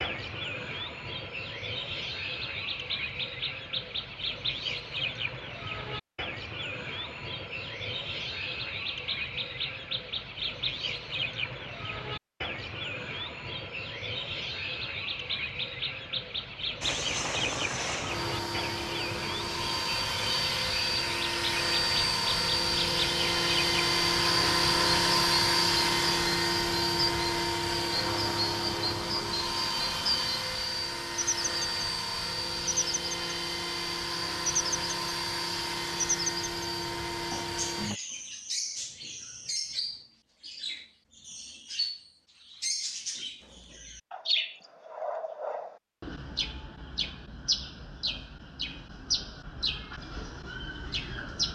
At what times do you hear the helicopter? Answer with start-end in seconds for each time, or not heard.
16.8-38.0.